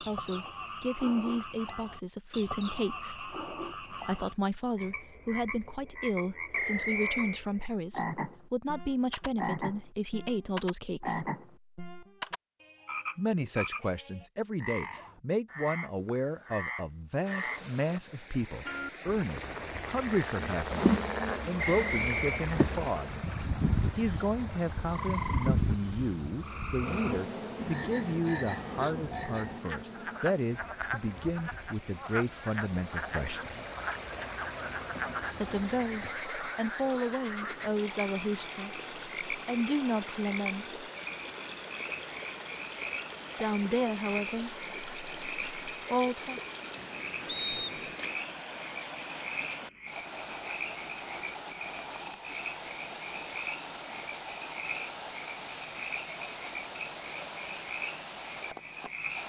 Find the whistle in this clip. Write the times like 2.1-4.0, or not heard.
6.5-7.5, 21.6-22.4, 47.2-47.9.